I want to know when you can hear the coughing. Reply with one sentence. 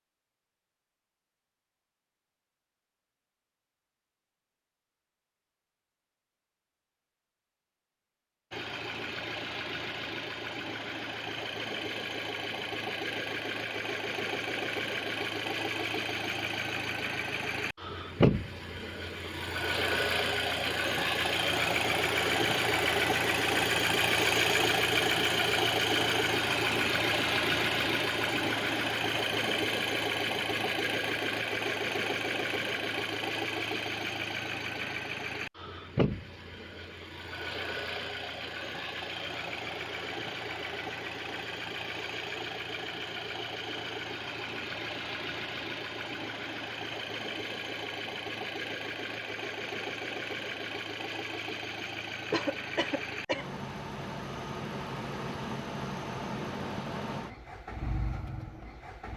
You can hear the coughing from 52.3 to 53.5 s.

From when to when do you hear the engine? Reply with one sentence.
You can hear the engine from 8.5 to 59.1 s.